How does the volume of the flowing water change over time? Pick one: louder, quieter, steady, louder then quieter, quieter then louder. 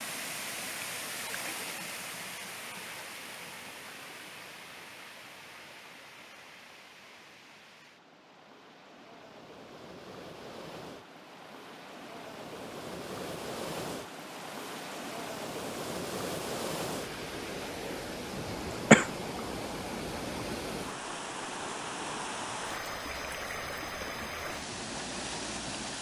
quieter then louder.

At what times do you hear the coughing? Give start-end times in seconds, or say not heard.
18.4-19.1.